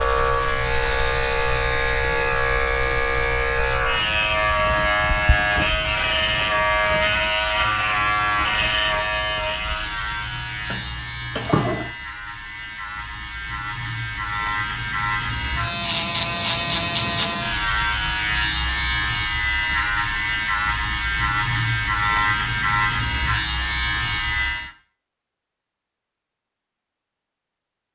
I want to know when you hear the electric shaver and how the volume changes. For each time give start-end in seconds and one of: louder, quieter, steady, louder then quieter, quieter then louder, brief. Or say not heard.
0.0-24.7 quieter then louder.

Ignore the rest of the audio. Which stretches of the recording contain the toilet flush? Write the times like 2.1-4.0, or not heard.
10.2-11.9.